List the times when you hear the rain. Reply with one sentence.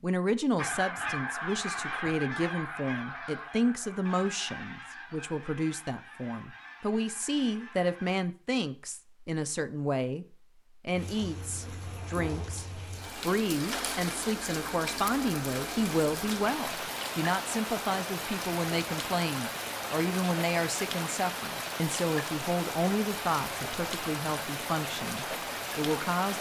The rain can be heard from 10.9 to 26.3 s.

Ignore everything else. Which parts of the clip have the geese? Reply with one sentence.
You can hear the geese from 0.6 to 8.2 s.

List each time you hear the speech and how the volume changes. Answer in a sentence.
The speech can be heard from 0.0 to 26.3 s, at a steady volume.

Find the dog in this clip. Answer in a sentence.
You can't hear the dog here.